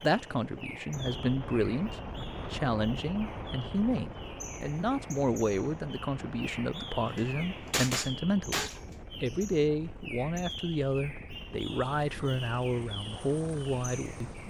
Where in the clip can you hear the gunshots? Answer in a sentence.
The gunshots can be heard from 7.0 to 8.8 s.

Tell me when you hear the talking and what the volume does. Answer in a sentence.
The talking can be heard from 0.0 to 14.3 s, at a steady volume.